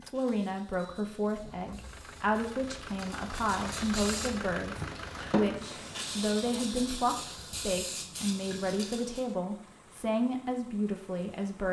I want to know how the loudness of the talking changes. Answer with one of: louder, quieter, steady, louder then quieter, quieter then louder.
steady.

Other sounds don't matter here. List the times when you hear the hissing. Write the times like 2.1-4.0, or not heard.
0.0-9.3.